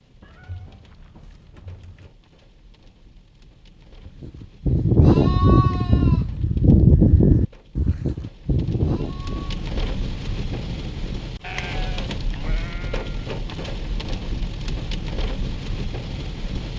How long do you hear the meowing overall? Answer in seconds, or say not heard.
2 s.